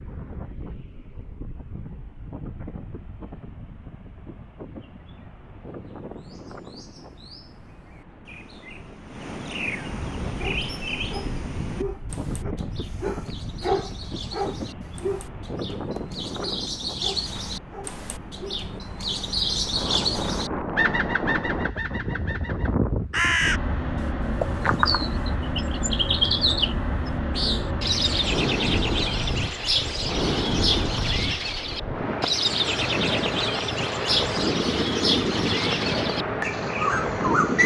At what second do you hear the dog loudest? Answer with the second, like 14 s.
14 s.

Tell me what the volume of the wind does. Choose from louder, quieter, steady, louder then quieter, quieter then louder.
louder.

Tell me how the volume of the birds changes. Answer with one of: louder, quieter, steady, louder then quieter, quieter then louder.
louder.